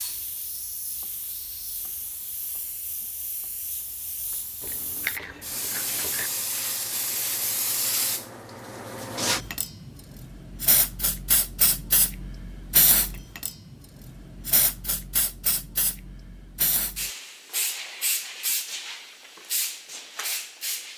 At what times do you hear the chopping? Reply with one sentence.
You can't hear the chopping here.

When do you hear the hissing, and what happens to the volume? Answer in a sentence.
The hissing can be heard from 0.0 to 20.9 s, getting louder.